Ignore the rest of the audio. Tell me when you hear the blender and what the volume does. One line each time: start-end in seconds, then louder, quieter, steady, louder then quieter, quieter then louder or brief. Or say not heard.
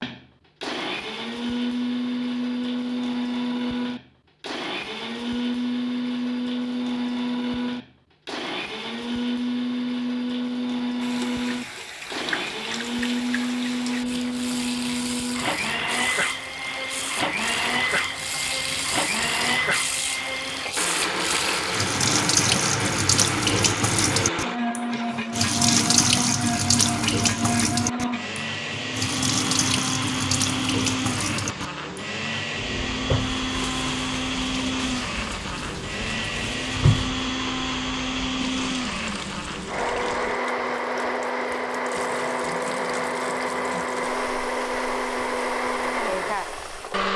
0.0-47.1 steady.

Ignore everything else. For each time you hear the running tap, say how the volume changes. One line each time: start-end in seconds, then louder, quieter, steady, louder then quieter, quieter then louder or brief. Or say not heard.
11.0-47.1 louder then quieter.